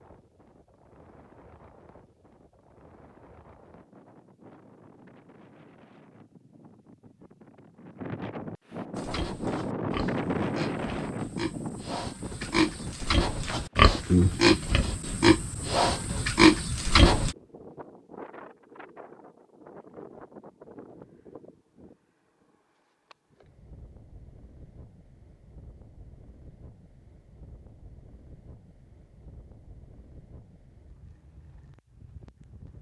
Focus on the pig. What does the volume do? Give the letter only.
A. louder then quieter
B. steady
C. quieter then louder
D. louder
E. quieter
D.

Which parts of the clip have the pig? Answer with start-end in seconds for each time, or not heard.
8.9-17.4.